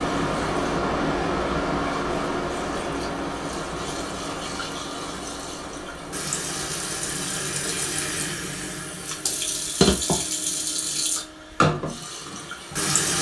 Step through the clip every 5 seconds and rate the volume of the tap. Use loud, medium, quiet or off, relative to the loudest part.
quiet, loud, loud.